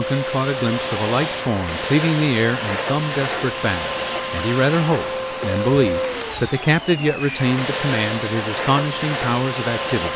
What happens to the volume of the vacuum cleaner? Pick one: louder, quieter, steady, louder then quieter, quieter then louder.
steady.